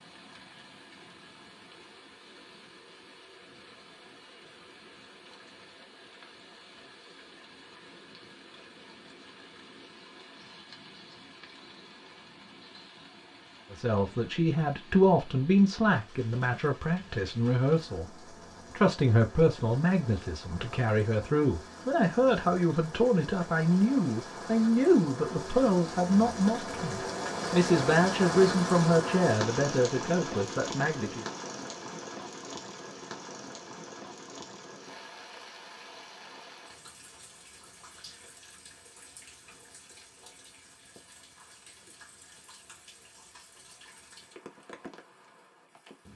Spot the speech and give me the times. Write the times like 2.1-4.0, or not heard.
13.7-18.1, 18.7-31.2.